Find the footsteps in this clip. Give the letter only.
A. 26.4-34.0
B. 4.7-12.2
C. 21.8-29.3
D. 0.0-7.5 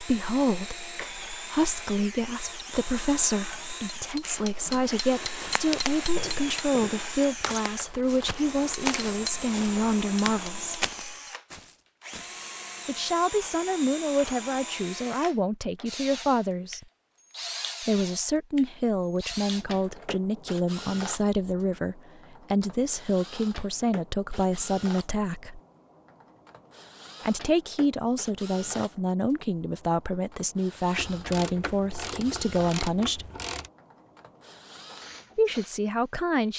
B.